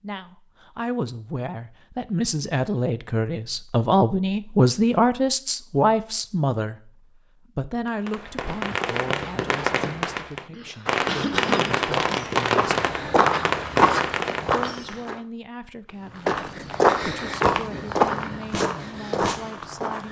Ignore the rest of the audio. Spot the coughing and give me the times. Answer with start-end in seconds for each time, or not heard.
10.5-11.8.